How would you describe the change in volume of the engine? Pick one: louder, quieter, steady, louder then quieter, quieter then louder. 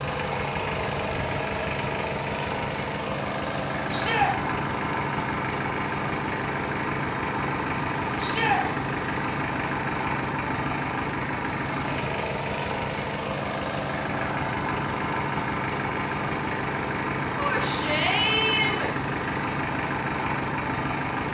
steady.